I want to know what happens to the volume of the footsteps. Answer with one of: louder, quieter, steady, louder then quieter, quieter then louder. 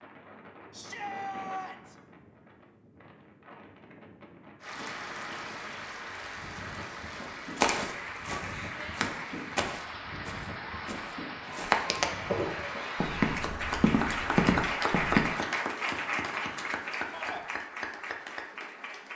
louder.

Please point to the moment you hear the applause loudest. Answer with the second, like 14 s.
15 s.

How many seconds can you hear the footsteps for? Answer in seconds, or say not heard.
8 s.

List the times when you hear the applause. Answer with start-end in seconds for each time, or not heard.
4.6-19.1.